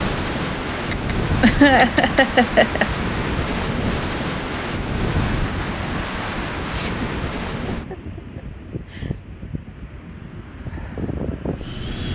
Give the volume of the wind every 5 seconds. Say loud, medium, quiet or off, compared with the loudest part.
loud, loud, medium.